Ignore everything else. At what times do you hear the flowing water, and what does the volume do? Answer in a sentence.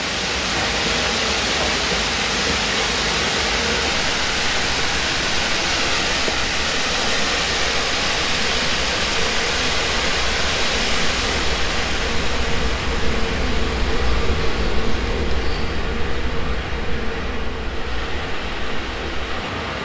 The flowing water can be heard from 0.0 to 19.8 s, getting quieter.